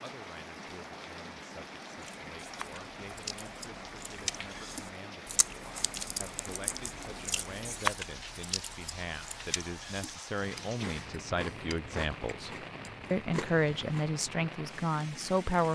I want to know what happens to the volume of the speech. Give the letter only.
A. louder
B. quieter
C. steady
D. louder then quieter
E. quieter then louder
A.